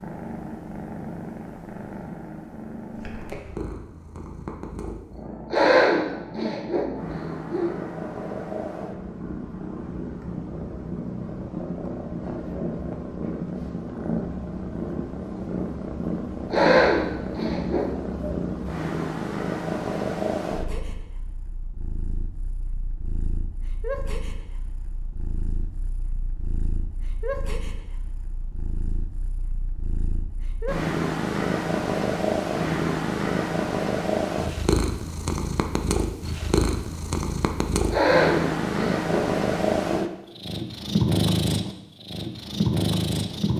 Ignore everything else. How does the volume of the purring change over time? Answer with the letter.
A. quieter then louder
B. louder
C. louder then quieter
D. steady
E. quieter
B.